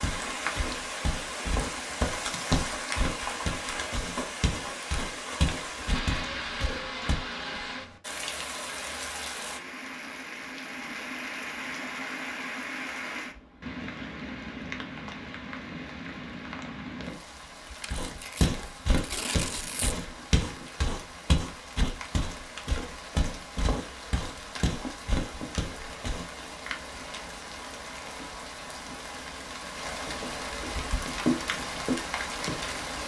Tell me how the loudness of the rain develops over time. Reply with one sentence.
The loudness of the rain goes down, then up.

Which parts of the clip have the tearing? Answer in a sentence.
You can hear the tearing from 17.8 to 20.0 s.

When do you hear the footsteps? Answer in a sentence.
The footsteps can be heard from 0.0 to 7.2 s and from 17.9 to 26.2 s.